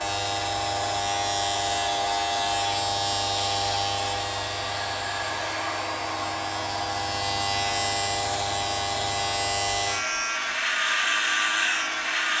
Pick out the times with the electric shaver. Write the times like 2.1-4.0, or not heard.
0.0-12.3.